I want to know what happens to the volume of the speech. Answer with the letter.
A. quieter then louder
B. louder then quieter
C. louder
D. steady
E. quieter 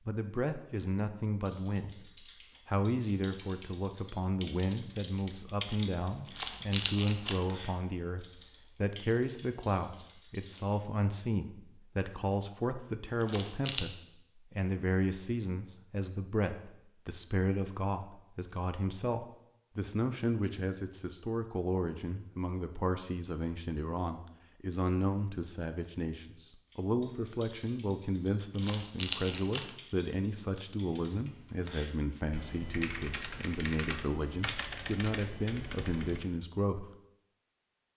D.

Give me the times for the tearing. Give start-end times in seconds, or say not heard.
6.2-7.4, 13.2-13.8, 28.6-29.7.